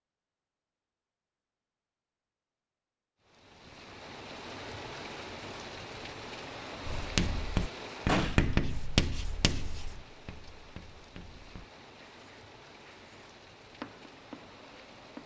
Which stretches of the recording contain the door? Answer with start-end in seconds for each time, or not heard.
8.1-8.6.